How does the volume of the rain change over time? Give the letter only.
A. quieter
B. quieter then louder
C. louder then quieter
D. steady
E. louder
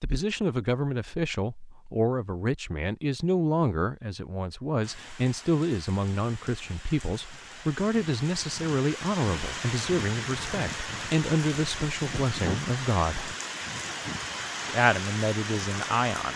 E.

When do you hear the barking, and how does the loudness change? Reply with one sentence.
The barking can't be heard in this clip.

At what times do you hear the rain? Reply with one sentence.
You can hear the rain from 4.8 to 16.3 s.